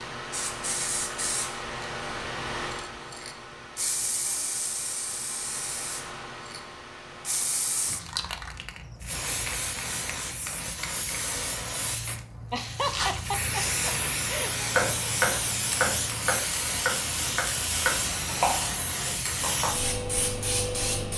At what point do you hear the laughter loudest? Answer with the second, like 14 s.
13 s.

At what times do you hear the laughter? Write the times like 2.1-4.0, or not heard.
12.5-14.7.